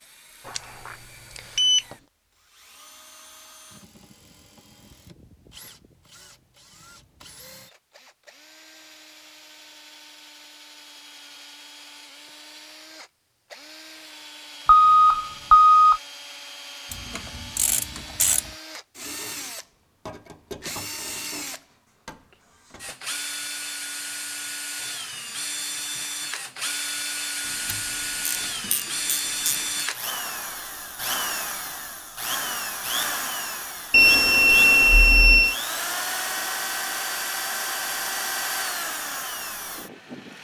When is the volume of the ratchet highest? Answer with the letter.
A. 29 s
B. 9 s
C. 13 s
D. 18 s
D.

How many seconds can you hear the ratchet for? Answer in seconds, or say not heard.
4 s.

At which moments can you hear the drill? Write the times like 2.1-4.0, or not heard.
0.0-40.4.